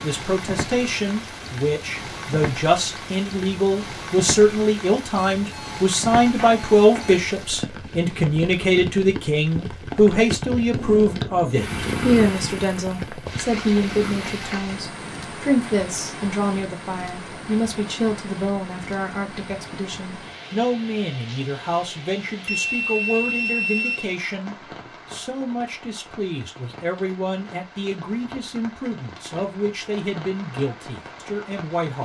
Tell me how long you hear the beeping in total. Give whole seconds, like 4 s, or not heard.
4 s.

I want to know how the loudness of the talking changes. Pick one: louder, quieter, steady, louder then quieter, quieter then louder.
quieter.